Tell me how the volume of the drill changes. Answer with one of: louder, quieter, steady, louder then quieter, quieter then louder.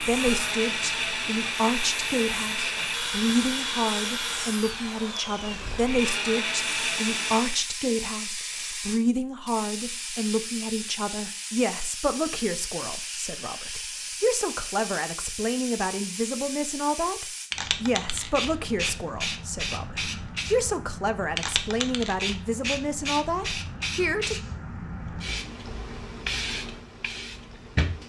quieter then louder.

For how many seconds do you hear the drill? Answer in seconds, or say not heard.
8 s.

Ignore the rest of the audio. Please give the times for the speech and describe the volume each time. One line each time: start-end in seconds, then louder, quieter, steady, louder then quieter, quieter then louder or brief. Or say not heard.
0.0-24.4 steady.